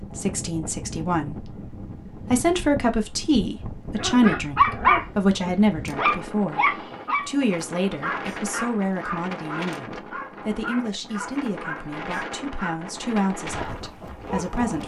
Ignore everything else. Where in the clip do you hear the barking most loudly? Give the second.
5 s.